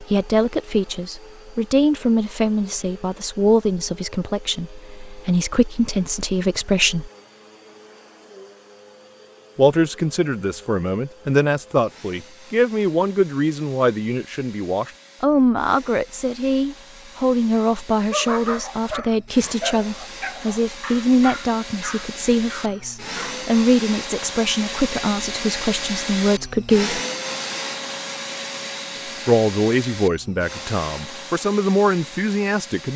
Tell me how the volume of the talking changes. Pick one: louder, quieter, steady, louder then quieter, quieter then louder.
steady.